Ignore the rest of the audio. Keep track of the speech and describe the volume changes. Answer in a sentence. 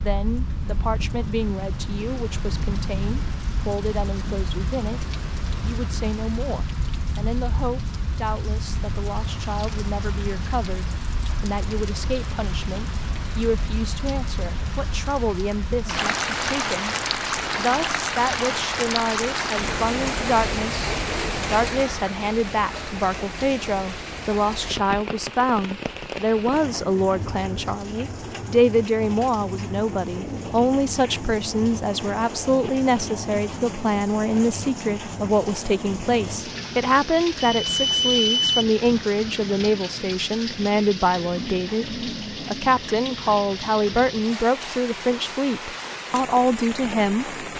The volume of the speech goes up.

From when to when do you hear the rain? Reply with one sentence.
You can hear the rain from 0.0 to 47.5 s.